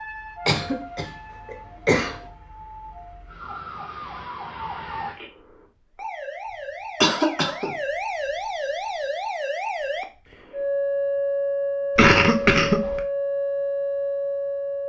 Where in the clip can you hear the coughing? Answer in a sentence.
The coughing can be heard from 0.5 to 2.2 s, from 7.0 to 7.8 s and from 11.9 to 13.0 s.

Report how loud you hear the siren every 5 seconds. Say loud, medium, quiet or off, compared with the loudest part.
quiet, medium, loud.